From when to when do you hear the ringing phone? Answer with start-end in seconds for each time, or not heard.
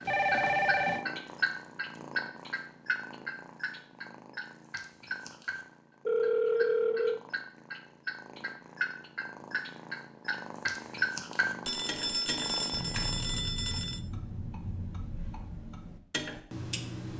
0.1-1.1, 6.0-7.2, 11.7-14.0.